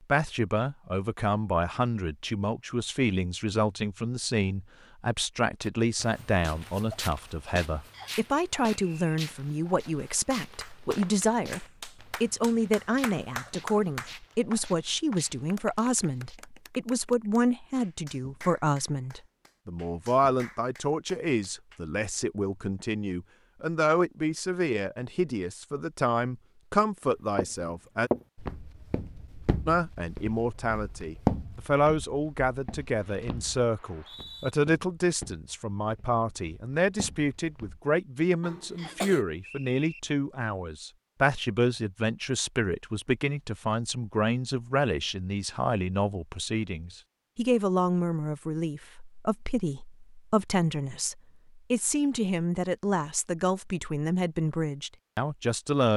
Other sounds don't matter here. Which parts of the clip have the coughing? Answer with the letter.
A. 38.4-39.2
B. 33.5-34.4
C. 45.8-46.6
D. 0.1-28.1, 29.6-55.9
A.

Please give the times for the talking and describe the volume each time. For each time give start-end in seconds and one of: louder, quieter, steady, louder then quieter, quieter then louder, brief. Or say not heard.
0.1-28.1 steady
29.6-55.9 steady.